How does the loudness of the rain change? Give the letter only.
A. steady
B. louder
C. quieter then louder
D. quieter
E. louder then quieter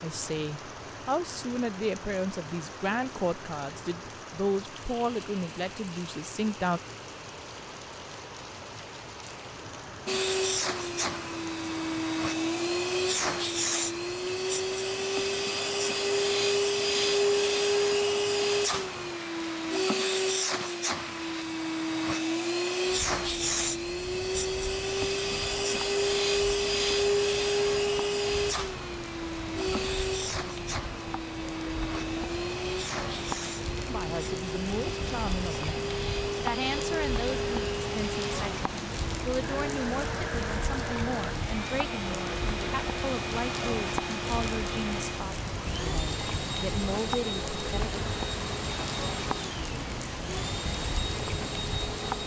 B.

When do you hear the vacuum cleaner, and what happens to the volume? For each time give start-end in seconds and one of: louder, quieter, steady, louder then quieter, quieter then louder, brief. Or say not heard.
10.1-52.2 quieter.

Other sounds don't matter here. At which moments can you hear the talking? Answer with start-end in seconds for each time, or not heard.
0.0-6.8, 33.9-47.9.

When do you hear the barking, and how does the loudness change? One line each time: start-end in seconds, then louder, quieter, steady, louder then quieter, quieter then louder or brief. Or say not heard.
not heard.